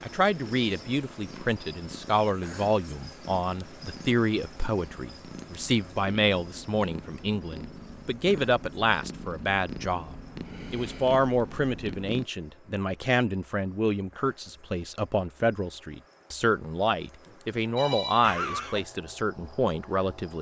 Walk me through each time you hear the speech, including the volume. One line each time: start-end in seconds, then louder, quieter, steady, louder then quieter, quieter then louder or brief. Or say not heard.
0.0-20.3 steady.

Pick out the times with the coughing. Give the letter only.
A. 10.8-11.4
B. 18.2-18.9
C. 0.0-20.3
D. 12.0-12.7
B.